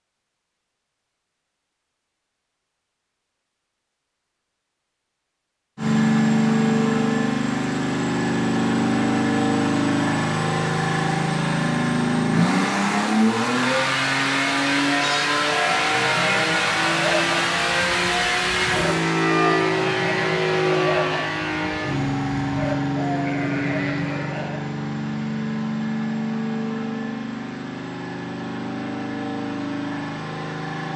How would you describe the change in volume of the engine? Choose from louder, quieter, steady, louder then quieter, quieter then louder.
quieter.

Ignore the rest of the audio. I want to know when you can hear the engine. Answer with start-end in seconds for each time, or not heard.
5.8-30.9.